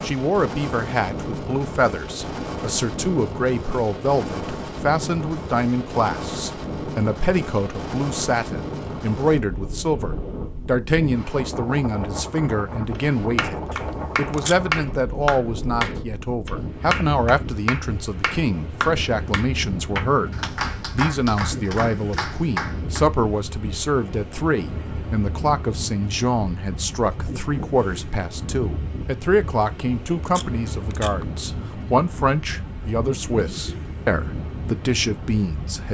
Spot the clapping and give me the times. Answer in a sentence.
The clapping can be heard from 12.9 to 23.1 s.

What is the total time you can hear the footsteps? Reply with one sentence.
You can't hear the footsteps here.